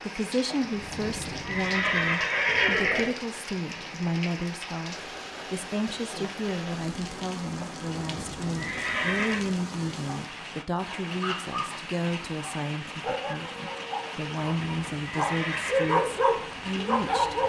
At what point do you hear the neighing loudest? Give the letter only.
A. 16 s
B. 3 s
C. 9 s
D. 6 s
B.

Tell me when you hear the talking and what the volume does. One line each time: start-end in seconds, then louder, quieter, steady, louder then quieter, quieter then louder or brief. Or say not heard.
0.0-17.4 steady.